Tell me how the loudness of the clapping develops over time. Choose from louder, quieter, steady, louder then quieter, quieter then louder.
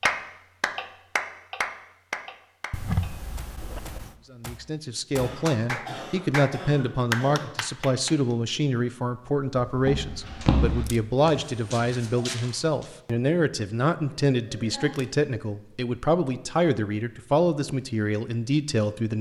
quieter then louder.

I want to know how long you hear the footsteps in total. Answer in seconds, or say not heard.
3 s.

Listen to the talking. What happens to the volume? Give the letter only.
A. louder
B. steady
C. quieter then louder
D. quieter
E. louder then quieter
B.